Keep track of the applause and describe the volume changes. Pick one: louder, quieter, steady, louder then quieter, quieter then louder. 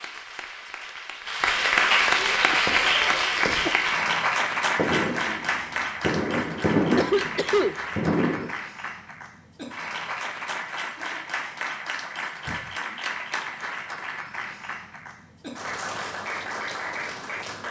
quieter.